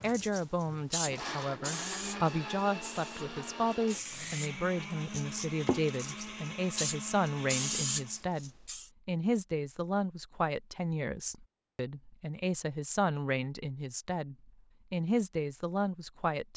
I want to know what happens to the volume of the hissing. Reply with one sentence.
The volume of the hissing goes down, then up.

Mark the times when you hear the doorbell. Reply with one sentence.
You can't hear the doorbell here.